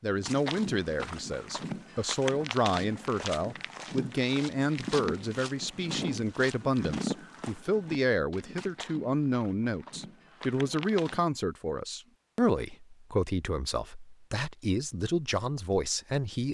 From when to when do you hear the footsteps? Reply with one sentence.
The footsteps can be heard from 0.1 to 11.2 s.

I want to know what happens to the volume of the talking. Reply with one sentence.
The volume of the talking stays about the same.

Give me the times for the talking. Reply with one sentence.
The talking can be heard from 0.0 to 16.4 s.